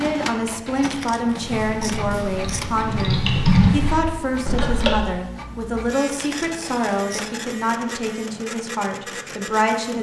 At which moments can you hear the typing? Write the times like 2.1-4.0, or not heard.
1.4-5.0.